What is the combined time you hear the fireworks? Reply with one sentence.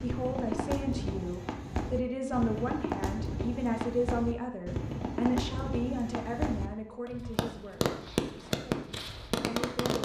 You can hear the fireworks for 10 seconds altogether.